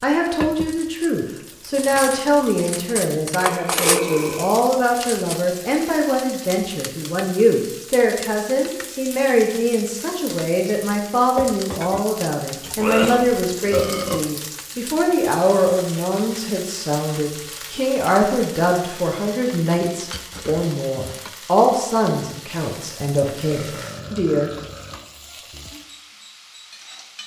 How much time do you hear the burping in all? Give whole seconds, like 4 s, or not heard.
4 s.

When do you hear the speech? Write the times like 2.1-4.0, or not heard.
0.0-24.5.